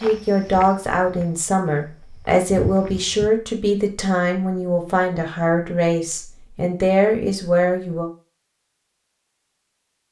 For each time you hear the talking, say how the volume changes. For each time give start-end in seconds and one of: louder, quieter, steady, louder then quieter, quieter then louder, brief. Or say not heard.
0.0-8.1 steady.